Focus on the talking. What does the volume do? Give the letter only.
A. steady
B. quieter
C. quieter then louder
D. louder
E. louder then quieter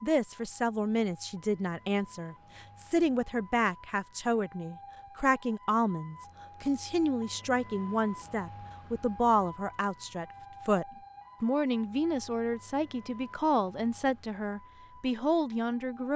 A.